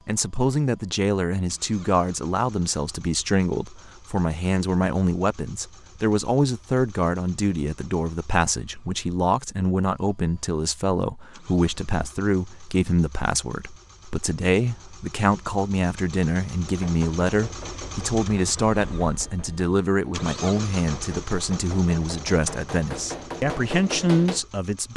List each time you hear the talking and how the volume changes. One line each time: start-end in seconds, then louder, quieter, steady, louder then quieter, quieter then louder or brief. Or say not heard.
0.1-24.9 steady.